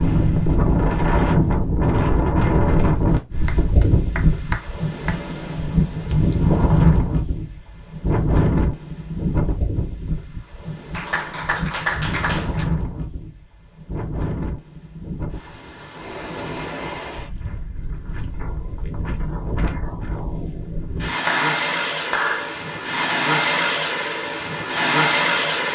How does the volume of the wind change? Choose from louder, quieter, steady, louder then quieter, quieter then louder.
quieter then louder.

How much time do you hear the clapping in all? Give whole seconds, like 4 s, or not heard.
5 s.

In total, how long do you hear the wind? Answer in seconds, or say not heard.
26 s.